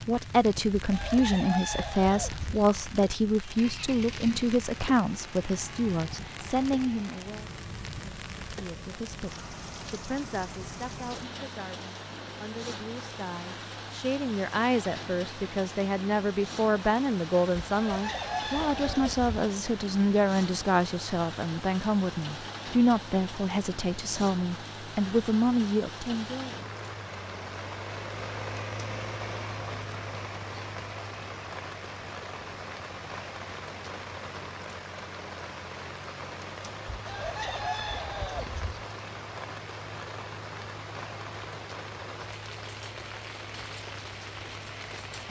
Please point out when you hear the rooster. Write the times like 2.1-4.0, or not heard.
0.8-2.5, 17.6-19.3, 37.0-38.9.